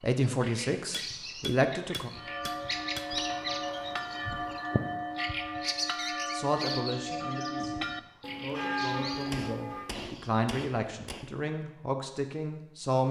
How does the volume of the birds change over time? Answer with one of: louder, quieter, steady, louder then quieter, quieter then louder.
louder then quieter.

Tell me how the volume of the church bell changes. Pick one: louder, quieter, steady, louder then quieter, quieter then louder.
steady.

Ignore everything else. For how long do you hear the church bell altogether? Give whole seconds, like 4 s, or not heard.
8 s.